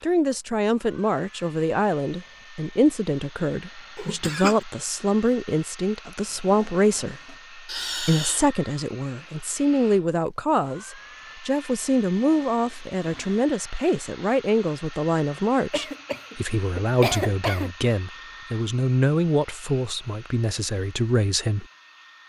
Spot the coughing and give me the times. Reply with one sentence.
You can hear the coughing from 4.0 to 4.7 s, from 7.7 to 8.5 s and from 15.7 to 17.8 s.